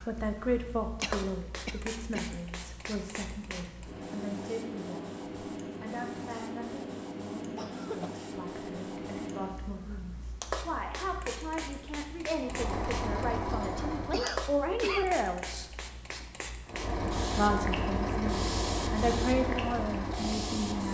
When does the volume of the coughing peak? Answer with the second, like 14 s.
15 s.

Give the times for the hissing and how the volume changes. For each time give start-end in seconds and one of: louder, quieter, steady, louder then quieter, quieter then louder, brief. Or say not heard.
0.0-20.9 steady.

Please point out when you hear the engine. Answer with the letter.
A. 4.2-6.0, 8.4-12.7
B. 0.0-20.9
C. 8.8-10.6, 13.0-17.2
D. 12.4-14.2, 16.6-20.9
D.